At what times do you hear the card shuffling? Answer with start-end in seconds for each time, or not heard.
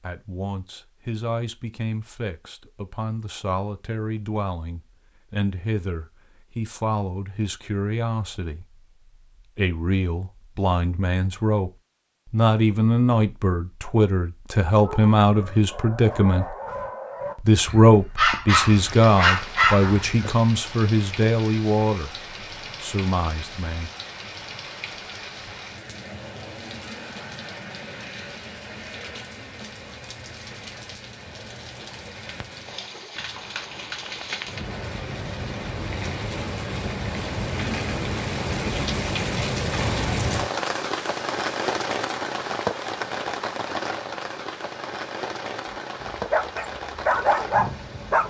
not heard.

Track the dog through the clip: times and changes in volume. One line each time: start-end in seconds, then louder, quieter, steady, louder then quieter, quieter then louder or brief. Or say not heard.
14.8-20.3 louder
46.0-48.2 brief.